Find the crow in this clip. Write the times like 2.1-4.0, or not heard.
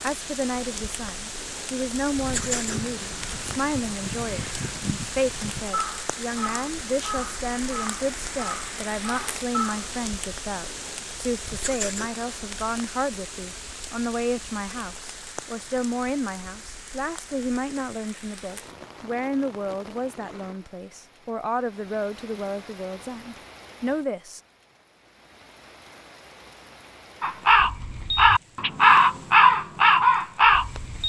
2.2-9.9, 27.2-31.0.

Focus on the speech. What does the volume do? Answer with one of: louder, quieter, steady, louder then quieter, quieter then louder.
steady.